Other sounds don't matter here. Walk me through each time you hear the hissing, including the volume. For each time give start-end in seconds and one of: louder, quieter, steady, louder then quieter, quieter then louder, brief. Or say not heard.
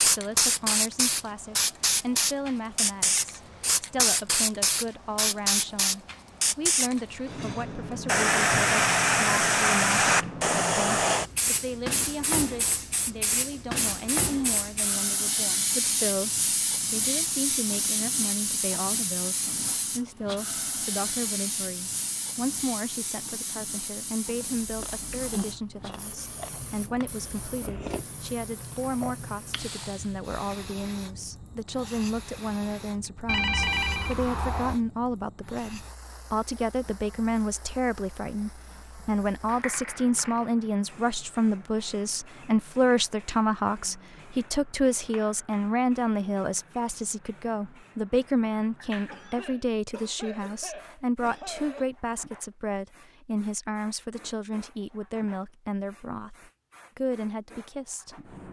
0.0-58.4 quieter.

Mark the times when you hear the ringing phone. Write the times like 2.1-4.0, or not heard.
33.2-34.8.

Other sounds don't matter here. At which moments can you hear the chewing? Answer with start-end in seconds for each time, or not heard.
24.4-30.6.